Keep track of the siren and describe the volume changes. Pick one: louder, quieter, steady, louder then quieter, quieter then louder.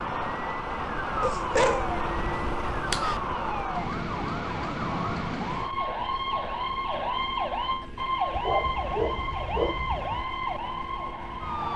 steady.